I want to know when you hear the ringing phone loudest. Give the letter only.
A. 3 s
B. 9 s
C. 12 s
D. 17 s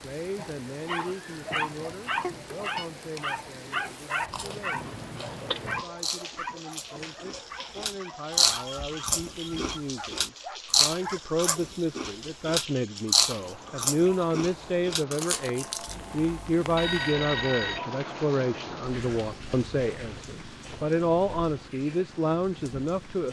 D.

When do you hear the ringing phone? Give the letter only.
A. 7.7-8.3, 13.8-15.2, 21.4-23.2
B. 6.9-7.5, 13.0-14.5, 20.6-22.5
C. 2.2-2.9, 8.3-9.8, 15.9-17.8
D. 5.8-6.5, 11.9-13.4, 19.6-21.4
C.